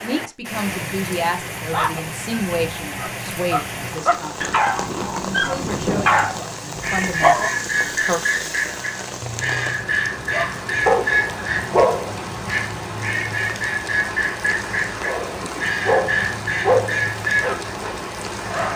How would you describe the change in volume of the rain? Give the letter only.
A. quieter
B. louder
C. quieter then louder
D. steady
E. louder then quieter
D.